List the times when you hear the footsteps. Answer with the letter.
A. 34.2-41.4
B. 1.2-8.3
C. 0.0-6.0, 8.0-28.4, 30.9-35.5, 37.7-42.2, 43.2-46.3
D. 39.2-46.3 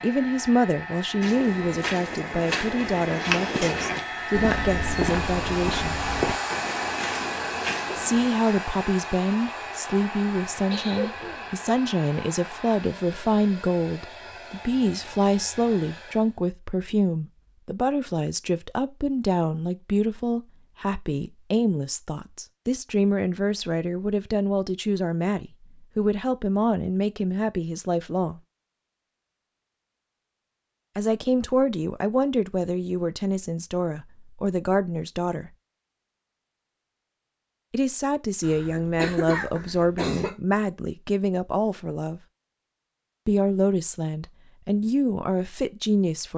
B.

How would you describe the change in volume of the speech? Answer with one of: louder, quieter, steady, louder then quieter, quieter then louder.
steady.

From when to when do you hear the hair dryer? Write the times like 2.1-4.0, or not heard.
0.0-16.4.